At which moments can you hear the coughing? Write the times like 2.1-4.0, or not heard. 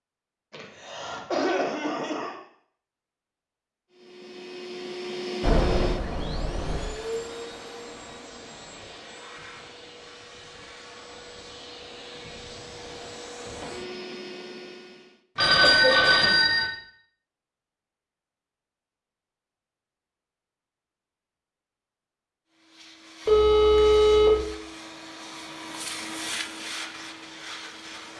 0.5-2.4, 15.6-16.4.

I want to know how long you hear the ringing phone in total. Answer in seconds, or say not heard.
4 s.